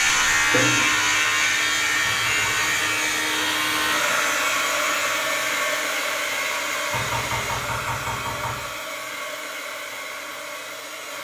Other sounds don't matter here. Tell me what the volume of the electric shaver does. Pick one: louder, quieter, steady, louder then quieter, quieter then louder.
quieter.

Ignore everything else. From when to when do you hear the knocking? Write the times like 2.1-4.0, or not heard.
2.0-2.9, 6.9-8.7.